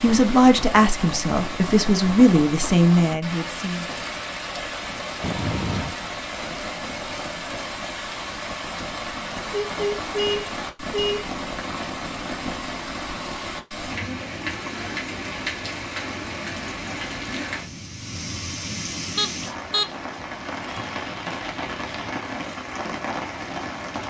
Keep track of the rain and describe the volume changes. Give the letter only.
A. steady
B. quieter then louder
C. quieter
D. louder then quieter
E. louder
A.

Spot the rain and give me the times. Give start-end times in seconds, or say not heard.
0.0-24.0.